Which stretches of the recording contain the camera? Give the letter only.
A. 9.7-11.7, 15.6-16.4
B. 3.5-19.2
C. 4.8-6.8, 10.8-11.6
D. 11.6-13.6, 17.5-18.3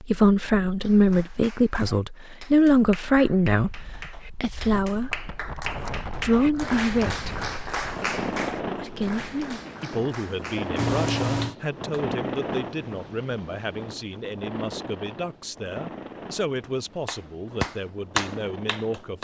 C.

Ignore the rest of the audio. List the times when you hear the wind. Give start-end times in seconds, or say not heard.
3.5-19.2.